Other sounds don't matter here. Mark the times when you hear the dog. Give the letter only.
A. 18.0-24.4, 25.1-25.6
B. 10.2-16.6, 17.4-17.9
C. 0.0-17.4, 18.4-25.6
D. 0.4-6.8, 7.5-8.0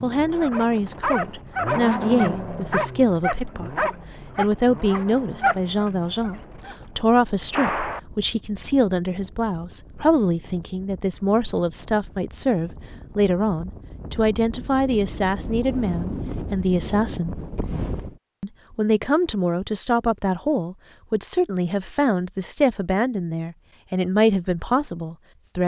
D.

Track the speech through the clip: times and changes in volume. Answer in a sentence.
The speech can be heard from 0.0 to 17.4 s, at a steady volume; and from 18.4 to 25.6 s, at a steady volume.